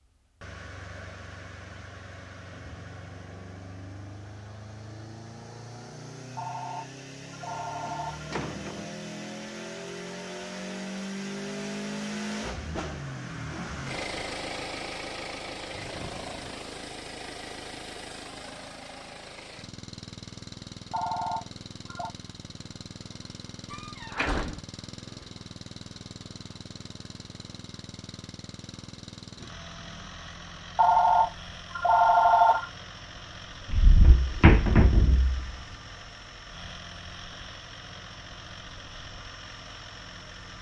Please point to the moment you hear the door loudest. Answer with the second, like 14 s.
35 s.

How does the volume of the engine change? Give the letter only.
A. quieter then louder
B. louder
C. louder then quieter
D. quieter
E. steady
C.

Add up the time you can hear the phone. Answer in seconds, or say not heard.
5 s.